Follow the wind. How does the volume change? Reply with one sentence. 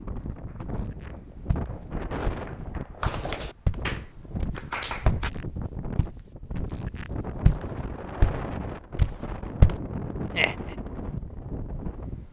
The volume of the wind stays about the same.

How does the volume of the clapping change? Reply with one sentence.
The volume of the clapping goes up.